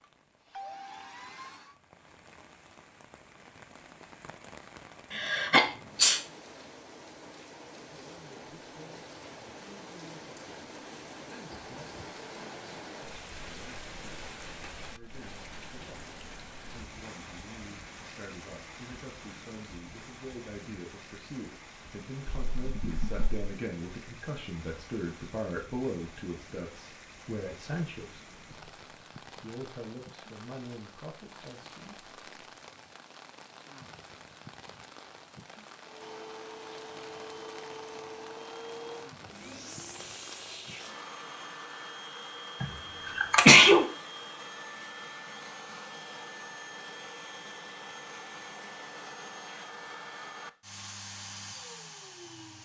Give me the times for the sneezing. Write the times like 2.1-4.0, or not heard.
5.1-6.2, 22.2-23.4, 42.6-43.9.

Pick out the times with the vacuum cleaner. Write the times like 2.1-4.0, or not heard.
0.0-1.8, 35.8-52.6.